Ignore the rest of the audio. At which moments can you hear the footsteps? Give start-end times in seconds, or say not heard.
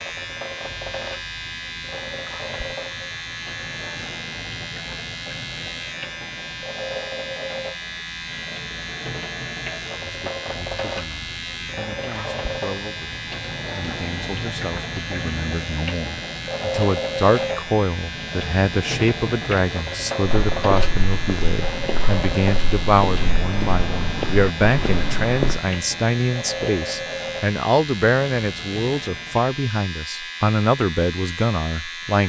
20.2-25.6.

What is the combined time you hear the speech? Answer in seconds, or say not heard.
22 s.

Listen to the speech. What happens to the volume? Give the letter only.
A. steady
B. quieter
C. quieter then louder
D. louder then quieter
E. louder
E.